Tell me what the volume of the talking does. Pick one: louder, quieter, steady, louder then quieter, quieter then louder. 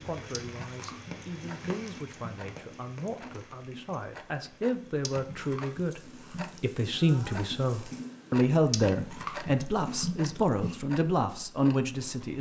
louder.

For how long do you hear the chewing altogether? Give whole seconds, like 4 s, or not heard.
6 s.